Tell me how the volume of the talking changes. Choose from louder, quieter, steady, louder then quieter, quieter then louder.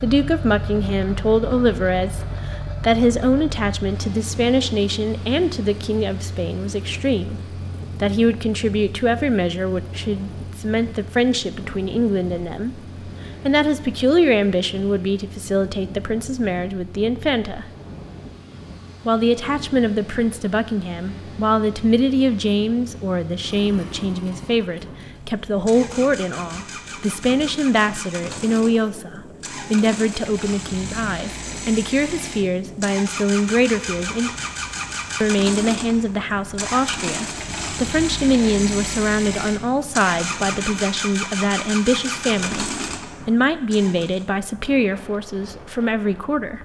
steady.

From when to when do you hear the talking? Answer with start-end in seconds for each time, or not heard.
0.0-7.4, 8.0-12.8, 13.4-17.6, 19.1-34.3, 35.2-46.6.